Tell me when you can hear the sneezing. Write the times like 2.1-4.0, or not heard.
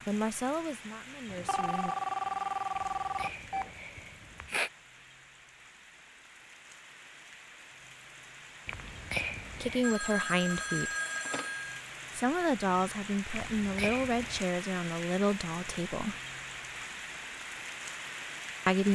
2.8-4.7, 8.7-9.9, 13.3-14.4.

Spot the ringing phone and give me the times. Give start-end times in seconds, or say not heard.
1.2-3.8, 9.8-11.8.